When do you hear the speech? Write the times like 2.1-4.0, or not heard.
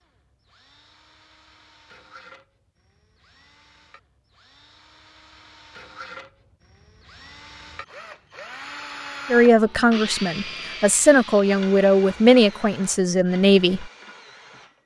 9.3-13.9.